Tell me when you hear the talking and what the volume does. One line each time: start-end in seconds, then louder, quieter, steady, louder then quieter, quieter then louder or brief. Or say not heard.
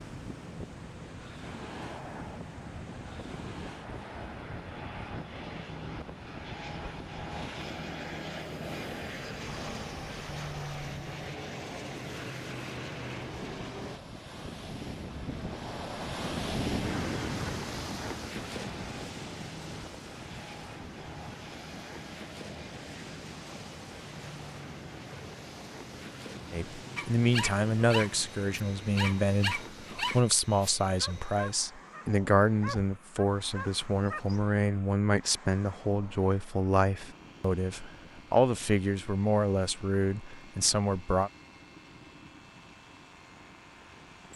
26.5-41.3 steady.